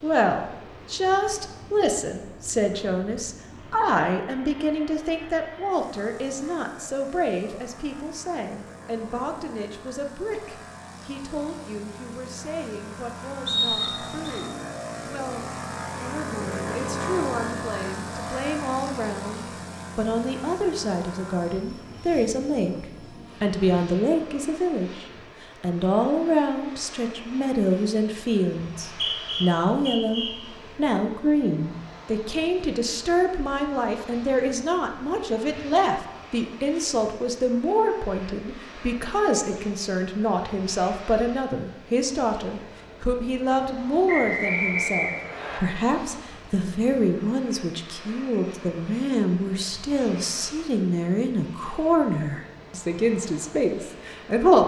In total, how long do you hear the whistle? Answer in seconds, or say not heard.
4 s.